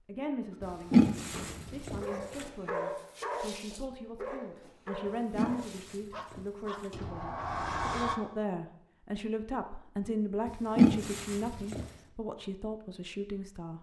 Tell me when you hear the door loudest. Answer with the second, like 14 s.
8 s.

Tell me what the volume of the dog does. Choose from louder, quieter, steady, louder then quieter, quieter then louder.
quieter.